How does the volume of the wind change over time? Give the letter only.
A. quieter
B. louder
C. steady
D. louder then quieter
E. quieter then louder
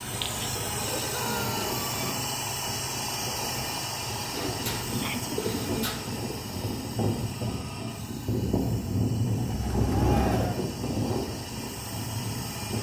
B.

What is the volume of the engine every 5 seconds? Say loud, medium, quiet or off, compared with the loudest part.
loud, medium, medium.